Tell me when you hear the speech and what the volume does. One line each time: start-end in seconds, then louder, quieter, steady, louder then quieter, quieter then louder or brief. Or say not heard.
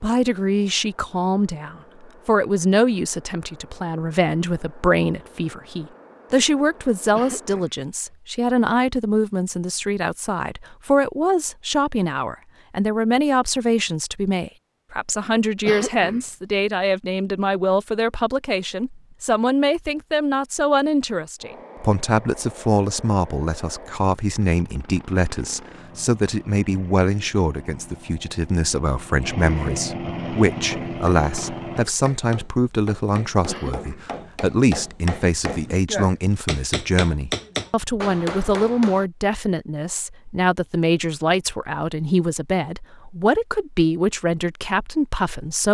0.0-45.6 steady.